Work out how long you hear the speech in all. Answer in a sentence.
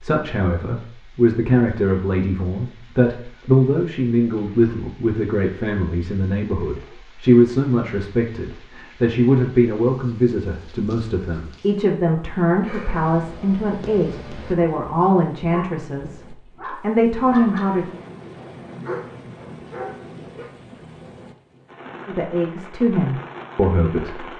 The speech can be heard for 20 seconds in total.